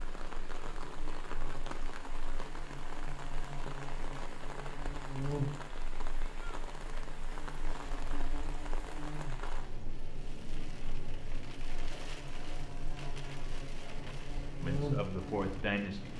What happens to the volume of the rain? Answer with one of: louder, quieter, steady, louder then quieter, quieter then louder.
steady.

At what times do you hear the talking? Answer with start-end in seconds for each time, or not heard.
14.6-16.1.